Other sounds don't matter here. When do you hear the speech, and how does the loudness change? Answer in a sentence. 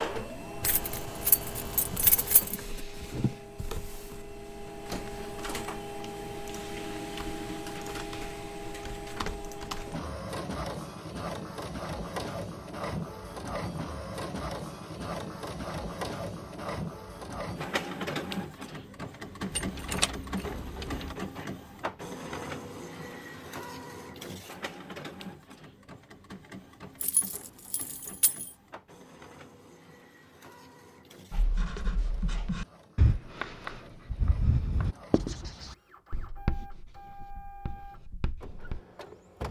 The speech can't be heard in this clip.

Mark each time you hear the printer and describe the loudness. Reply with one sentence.
You can hear the printer from 0.0 to 39.4 s, getting quieter.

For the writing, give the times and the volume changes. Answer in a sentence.
The writing can be heard from 31.3 to 38.8 s, getting quieter.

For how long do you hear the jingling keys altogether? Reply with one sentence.
You can hear the jingling keys for 5 seconds altogether.